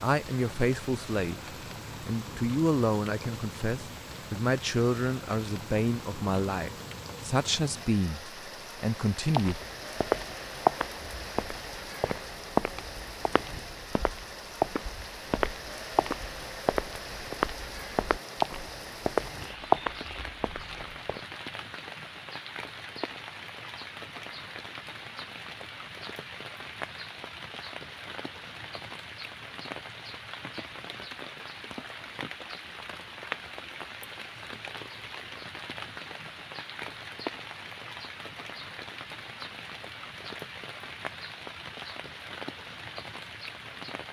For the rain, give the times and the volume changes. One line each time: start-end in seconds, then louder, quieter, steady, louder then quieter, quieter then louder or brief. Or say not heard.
0.0-44.0 steady.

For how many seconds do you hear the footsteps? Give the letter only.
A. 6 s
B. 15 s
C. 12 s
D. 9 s
C.